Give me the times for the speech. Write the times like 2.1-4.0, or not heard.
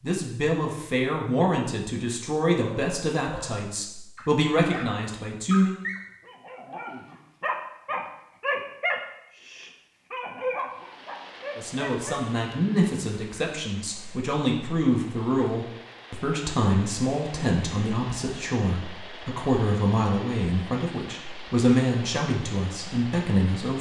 0.0-5.8, 11.6-23.7.